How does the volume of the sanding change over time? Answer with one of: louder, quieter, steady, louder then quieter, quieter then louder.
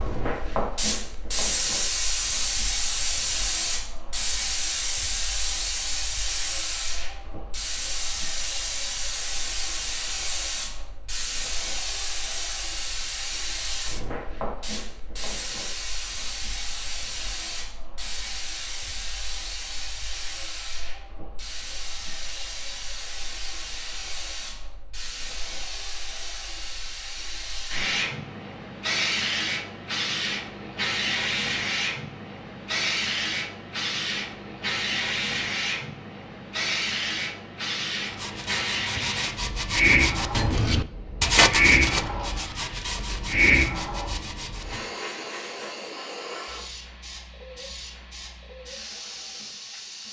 louder then quieter.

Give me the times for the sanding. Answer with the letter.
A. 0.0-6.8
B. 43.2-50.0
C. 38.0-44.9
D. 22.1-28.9
C.